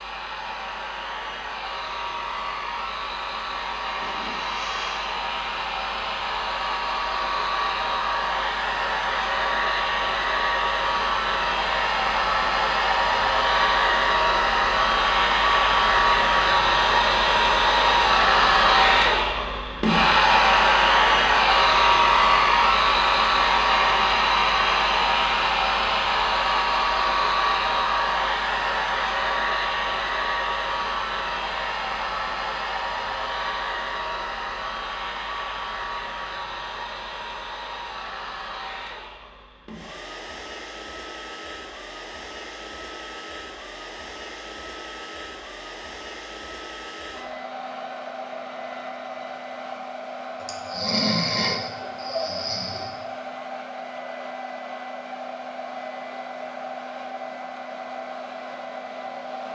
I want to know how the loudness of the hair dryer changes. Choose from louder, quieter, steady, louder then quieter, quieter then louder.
louder then quieter.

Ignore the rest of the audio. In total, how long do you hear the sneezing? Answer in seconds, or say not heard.
4 s.